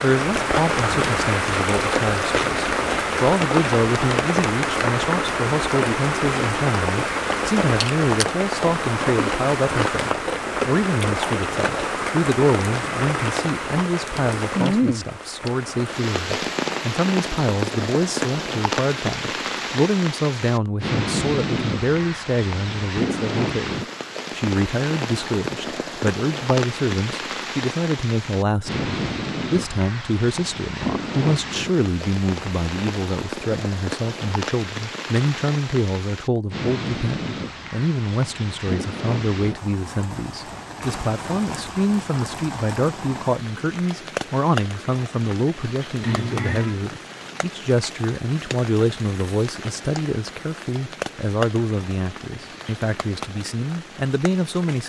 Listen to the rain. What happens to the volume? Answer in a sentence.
The loudness of the rain goes down.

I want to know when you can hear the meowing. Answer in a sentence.
The meowing can be heard from 46.0 to 46.8 s.